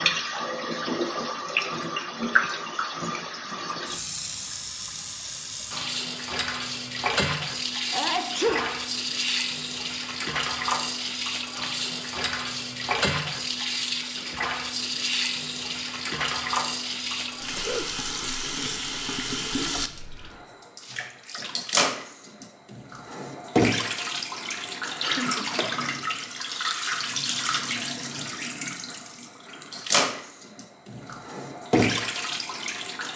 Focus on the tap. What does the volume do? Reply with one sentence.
The volume of the tap stays about the same.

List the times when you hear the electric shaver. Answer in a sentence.
You can't hear the electric shaver here.